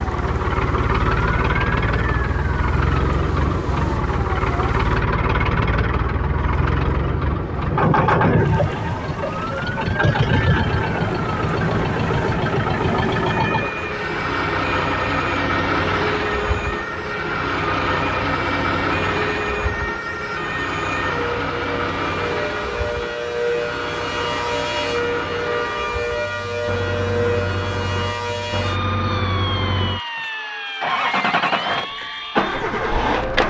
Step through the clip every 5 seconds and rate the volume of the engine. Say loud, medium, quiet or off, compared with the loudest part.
loud, loud, loud, loud, medium, medium, loud.